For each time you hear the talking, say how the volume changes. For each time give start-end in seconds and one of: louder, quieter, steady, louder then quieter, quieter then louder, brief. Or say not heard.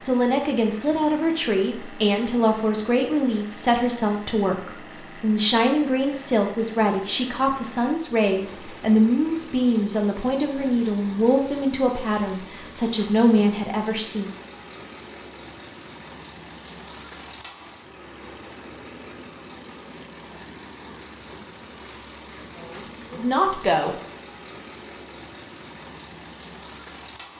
0.0-14.3 steady
22.4-23.9 brief.